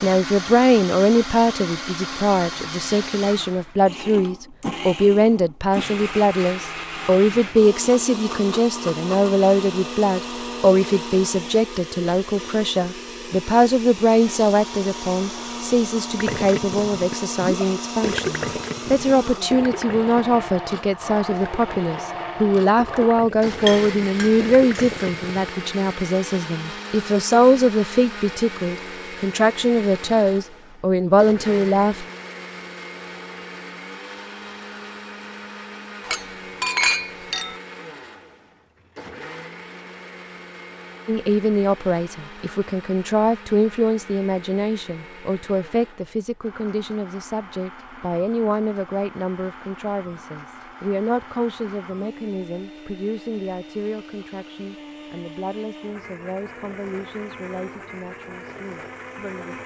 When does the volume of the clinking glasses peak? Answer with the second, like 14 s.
37 s.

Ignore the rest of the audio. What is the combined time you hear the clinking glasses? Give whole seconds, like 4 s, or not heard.
3 s.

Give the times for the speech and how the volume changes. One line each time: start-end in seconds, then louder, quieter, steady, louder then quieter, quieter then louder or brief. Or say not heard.
0.0-32.0 steady
41.0-59.6 quieter.